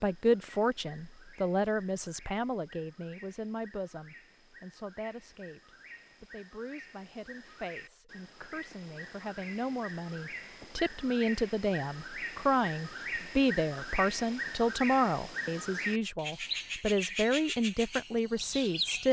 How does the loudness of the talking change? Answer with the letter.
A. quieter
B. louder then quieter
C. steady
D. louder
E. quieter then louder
E.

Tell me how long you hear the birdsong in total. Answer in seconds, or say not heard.
19 s.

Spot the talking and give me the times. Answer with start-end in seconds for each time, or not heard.
0.0-19.0.